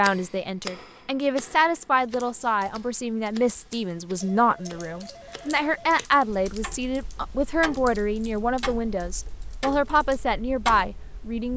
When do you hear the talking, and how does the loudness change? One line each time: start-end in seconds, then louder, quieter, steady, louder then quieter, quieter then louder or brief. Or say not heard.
0.0-11.5 steady.